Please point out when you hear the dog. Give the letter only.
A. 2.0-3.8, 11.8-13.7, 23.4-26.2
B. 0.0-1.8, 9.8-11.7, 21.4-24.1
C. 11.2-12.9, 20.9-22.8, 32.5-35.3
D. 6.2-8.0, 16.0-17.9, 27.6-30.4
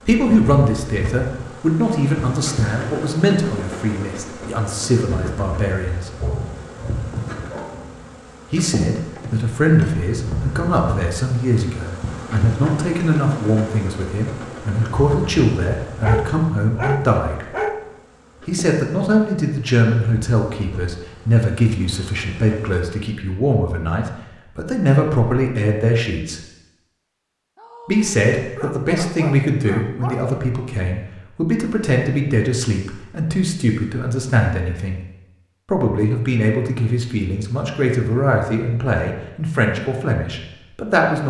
D.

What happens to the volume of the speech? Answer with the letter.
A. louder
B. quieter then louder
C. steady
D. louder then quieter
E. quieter
C.